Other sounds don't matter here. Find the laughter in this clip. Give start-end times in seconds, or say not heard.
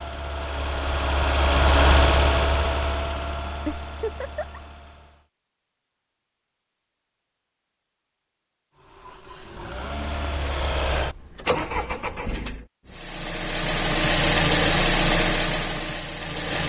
3.6-4.6.